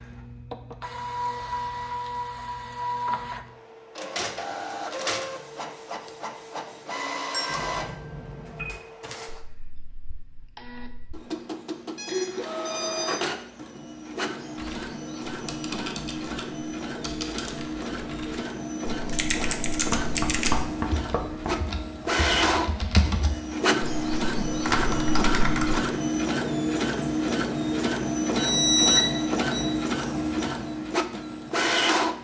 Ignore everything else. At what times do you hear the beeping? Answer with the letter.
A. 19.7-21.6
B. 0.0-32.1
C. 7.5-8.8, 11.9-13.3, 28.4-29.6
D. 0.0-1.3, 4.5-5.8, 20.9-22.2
C.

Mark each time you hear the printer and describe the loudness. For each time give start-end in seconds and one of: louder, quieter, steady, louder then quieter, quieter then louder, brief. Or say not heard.
0.0-32.1 louder.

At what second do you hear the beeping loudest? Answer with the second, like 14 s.
29 s.